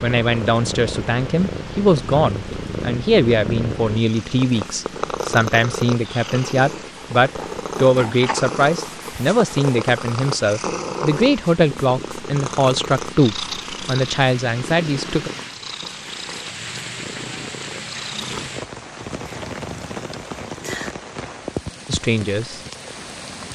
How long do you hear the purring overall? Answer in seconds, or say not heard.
21 s.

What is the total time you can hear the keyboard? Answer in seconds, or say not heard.
not heard.